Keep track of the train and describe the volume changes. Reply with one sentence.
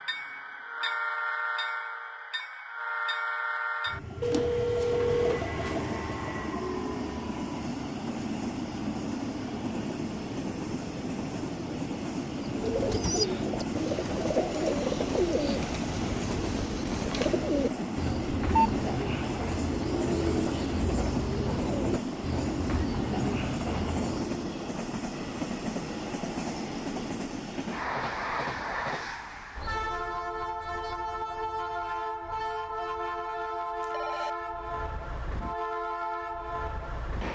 The volume of the train stays about the same.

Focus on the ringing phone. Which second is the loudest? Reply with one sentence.
The volume of the ringing phone peaks at 5 seconds.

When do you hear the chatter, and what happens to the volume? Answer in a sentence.
You can't hear the chatter here.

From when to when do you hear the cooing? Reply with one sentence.
You can hear the cooing from 12.4 to 24.5 s.